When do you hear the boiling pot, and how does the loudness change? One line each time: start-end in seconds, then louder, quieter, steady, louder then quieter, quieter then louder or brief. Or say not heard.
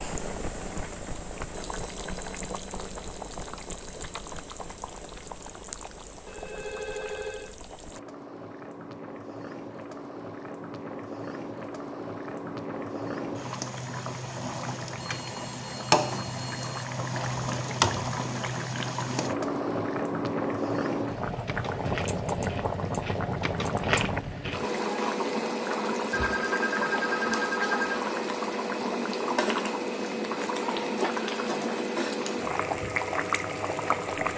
0.0-34.3 louder.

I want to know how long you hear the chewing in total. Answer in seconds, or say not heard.
4 s.